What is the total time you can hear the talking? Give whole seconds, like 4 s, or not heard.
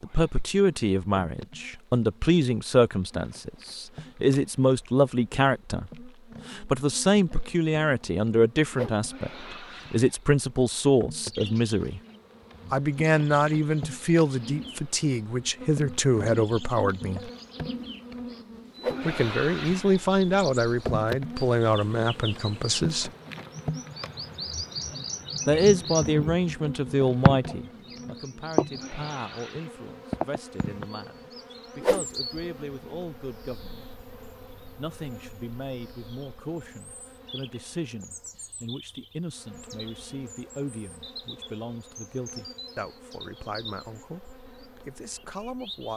40 s.